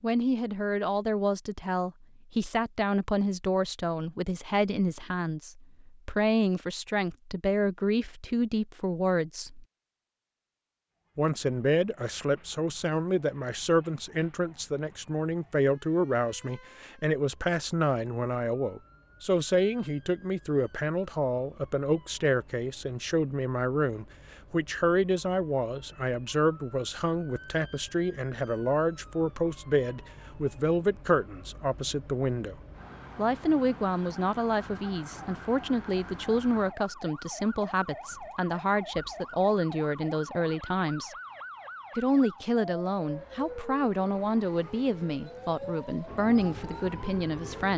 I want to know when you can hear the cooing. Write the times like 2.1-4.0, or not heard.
not heard.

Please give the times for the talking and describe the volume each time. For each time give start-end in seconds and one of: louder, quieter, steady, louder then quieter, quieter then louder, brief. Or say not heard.
0.0-9.7 steady
11.2-32.5 steady
33.1-41.1 steady
42.0-47.7 steady.